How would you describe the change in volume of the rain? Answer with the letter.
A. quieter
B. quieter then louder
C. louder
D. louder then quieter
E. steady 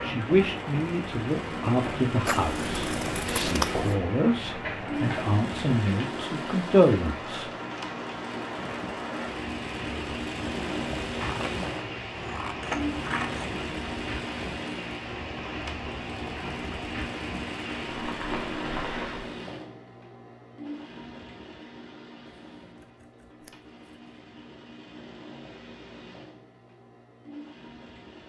E.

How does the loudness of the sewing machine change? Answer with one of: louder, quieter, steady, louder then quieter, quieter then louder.
quieter.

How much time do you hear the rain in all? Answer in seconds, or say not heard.
19 s.